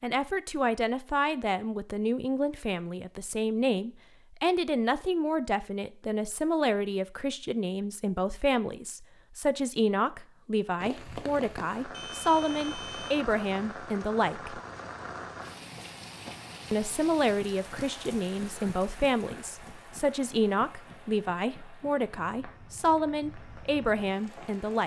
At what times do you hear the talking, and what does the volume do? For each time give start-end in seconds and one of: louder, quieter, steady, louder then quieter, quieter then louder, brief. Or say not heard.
0.0-14.6 steady
16.7-24.8 steady.